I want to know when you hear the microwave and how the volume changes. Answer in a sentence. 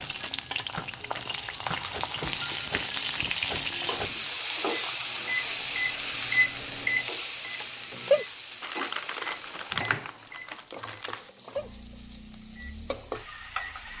The microwave can be heard from 0.0 to 13.9 s, getting louder then quieter.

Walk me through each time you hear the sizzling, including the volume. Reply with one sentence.
You can hear the sizzling from 0.0 to 13.9 s, getting quieter.